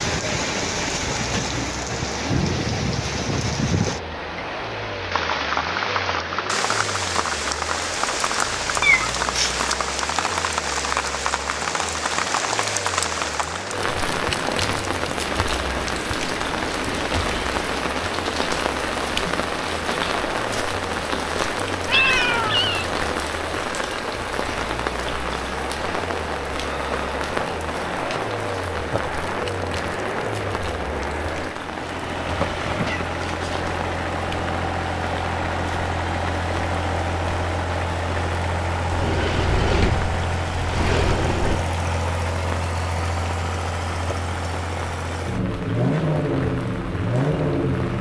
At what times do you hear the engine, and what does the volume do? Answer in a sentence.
The engine can be heard from 0.0 to 47.9 s, getting louder.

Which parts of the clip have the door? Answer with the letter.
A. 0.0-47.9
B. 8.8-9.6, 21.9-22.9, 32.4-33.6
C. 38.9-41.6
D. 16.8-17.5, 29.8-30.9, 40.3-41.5
C.